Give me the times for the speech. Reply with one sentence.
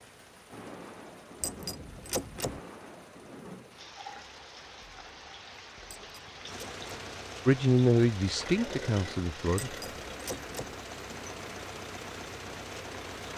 The speech can be heard from 7.5 to 9.8 s.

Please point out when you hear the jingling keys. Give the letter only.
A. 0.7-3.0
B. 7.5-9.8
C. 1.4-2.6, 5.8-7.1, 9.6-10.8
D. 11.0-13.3
C.